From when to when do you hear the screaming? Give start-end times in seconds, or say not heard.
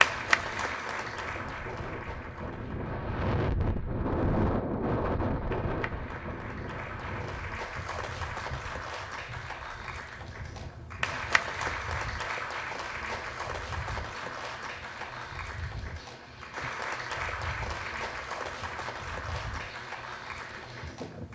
not heard.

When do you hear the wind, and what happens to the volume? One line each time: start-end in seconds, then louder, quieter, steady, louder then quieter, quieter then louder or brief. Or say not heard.
0.0-21.2 quieter.